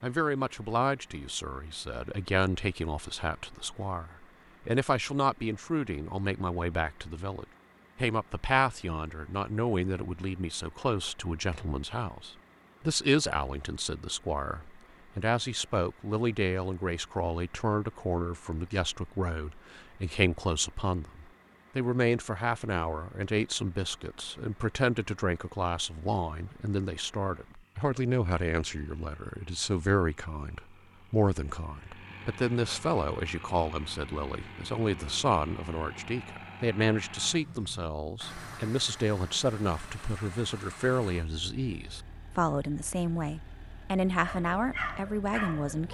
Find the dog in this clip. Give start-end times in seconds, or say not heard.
44.2-45.8.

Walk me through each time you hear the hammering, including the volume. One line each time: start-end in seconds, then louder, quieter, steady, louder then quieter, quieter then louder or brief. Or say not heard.
not heard.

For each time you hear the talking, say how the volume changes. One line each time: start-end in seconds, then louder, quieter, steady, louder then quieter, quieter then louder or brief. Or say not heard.
0.0-45.8 steady.